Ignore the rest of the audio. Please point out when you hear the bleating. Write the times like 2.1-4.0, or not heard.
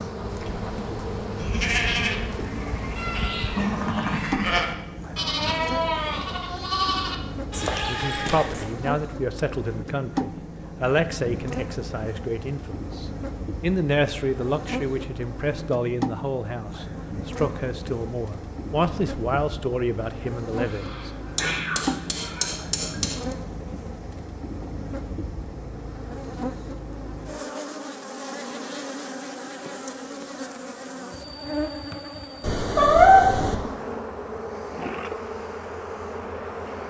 0.1-8.8.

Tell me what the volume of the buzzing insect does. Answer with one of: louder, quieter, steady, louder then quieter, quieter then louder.
steady.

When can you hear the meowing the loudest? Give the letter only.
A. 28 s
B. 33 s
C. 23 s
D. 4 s
B.